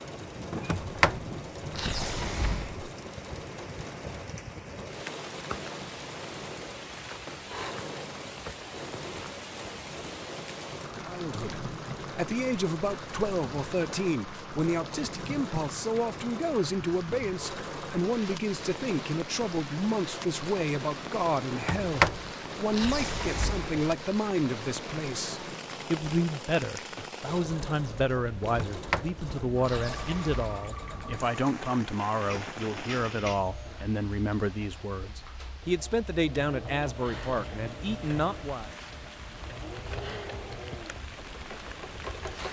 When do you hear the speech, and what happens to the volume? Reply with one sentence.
You can hear the speech from 11.0 to 38.7 s, at a steady volume.